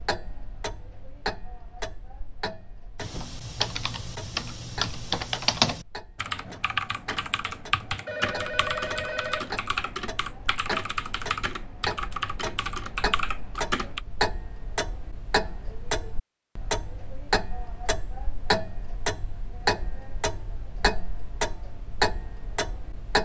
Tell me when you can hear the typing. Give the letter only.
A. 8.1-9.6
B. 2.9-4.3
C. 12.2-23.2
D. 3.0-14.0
D.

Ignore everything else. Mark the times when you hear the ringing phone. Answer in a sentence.
The ringing phone can be heard from 8.1 to 9.6 s.